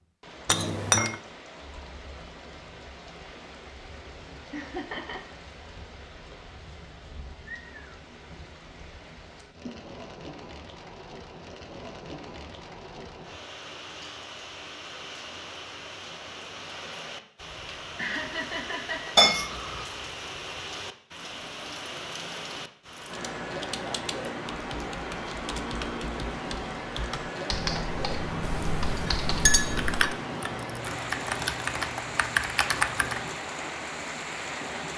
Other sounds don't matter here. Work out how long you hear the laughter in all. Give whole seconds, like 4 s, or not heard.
2 s.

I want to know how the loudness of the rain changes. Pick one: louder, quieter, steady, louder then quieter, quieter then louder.
louder.